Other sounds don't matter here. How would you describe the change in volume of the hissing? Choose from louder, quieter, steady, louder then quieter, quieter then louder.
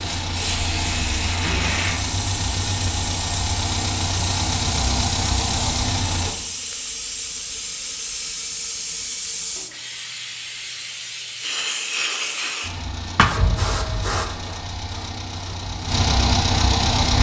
steady.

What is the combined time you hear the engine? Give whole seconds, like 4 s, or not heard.
11 s.